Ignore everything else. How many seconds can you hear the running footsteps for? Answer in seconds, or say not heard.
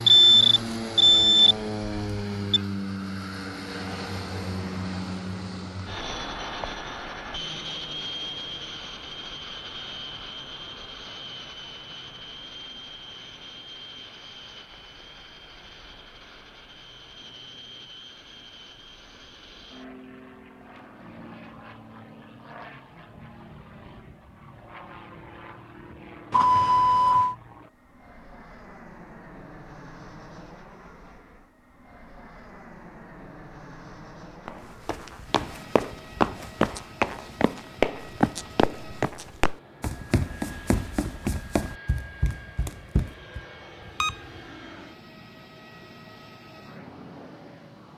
9 s.